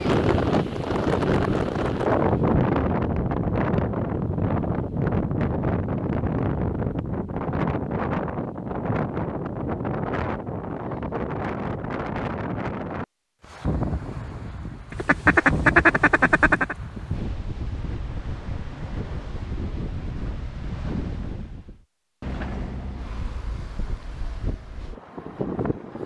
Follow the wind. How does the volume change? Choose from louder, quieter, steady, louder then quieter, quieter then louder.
quieter.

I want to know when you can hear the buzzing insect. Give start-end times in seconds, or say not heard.
not heard.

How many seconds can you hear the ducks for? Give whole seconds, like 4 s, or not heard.
2 s.